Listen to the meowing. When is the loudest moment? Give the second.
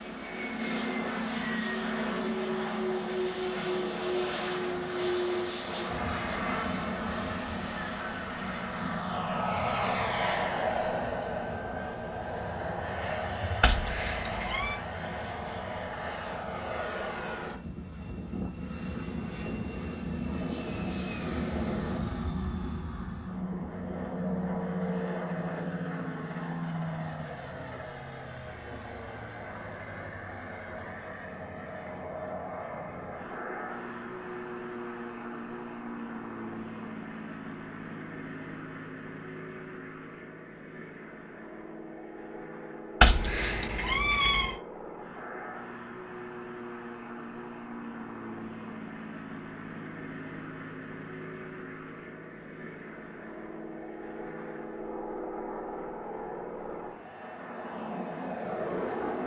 43 s.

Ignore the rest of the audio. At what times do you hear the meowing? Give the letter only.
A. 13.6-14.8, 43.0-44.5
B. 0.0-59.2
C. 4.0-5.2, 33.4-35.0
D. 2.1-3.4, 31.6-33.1
A.